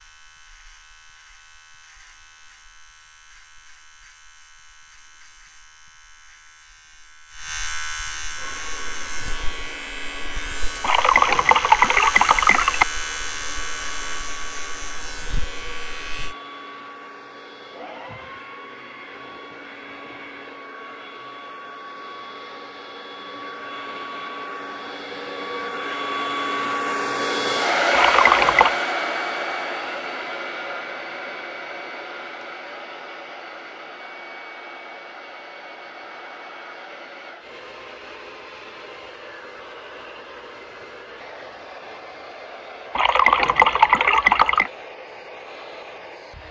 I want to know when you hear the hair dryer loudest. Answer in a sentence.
The volume of the hair dryer peaks at 28 seconds.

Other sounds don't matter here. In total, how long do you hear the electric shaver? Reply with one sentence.
The electric shaver can be heard for 16 seconds in total.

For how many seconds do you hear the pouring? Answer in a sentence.
The pouring can be heard for 5 seconds in total.